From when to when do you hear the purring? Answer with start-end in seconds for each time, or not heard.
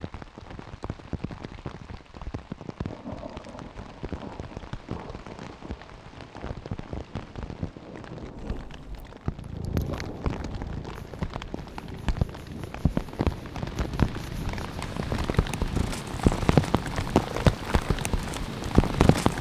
8.3-19.3.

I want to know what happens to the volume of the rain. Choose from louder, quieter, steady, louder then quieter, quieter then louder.
louder.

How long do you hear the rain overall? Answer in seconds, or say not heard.
19 s.